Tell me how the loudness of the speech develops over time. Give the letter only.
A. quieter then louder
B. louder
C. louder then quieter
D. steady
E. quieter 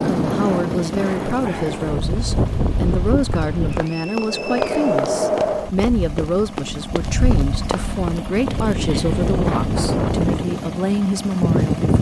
D.